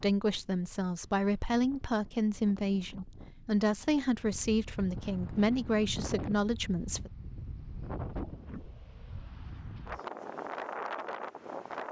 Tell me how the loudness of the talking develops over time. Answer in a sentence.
The loudness of the talking stays about the same.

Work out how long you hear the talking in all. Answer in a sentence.
The talking can be heard for 7 seconds in total.